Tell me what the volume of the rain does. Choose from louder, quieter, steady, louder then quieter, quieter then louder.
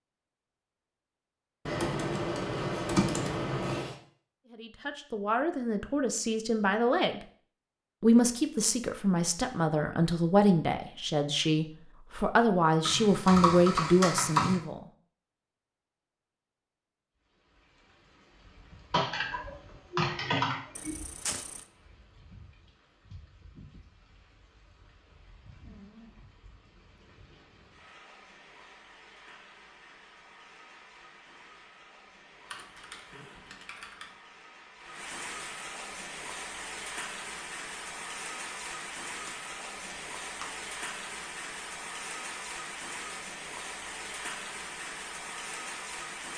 louder.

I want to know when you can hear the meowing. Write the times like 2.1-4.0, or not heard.
20.8-21.6.